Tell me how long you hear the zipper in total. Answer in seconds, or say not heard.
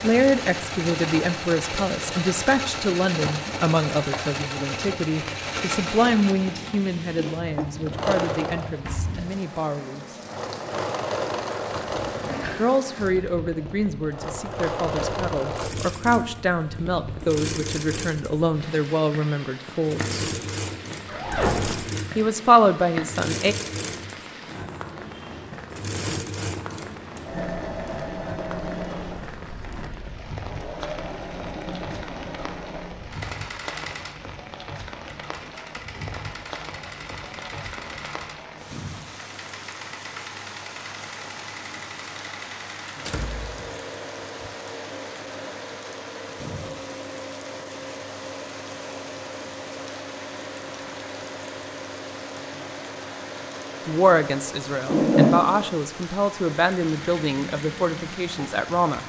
2 s.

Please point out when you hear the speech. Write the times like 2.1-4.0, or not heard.
0.0-10.2, 12.6-20.2, 22.1-23.6, 53.9-59.0.